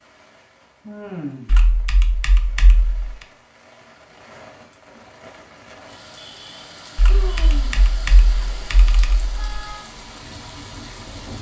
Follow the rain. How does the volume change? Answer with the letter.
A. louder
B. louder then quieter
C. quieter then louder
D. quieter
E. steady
A.